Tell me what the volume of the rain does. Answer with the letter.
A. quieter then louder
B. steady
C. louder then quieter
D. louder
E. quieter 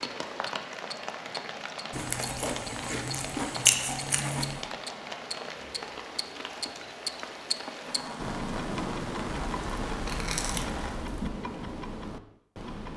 B.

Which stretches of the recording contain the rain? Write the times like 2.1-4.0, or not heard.
0.0-11.1.